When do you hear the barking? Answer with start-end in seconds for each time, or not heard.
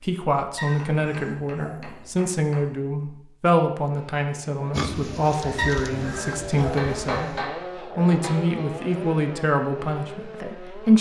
0.6-2.0, 5.5-7.1.